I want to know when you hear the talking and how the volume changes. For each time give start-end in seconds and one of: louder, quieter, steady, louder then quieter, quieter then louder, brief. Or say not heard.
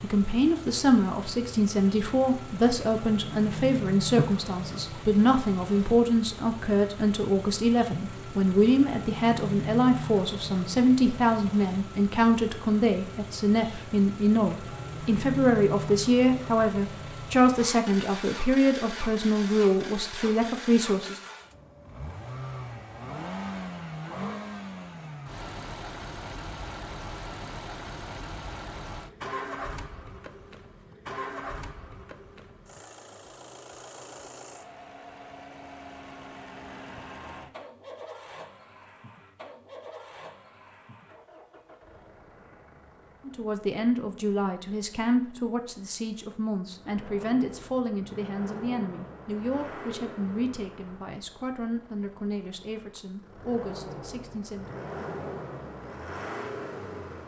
0.0-21.1 steady
43.2-54.8 quieter.